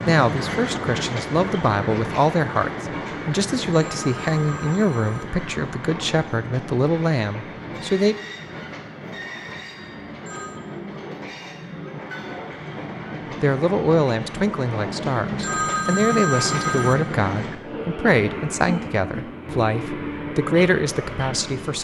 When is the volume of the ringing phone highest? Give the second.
16 s.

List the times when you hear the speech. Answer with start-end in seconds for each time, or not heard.
0.1-8.2, 13.4-21.7.